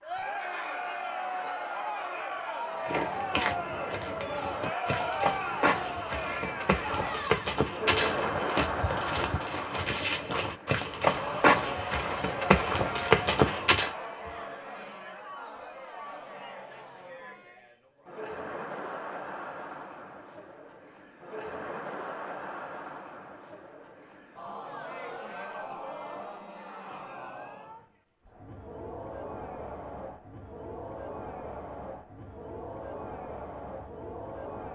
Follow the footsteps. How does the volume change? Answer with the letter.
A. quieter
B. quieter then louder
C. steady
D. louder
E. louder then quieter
D.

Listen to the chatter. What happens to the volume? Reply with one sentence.
The loudness of the chatter goes down.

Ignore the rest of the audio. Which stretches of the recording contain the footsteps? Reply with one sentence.
You can hear the footsteps from 2.9 to 13.9 s.